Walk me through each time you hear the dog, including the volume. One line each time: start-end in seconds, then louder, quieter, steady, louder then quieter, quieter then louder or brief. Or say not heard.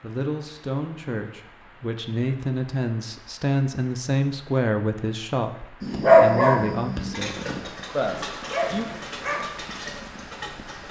5.8-10.8 quieter.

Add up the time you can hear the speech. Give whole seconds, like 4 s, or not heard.
9 s.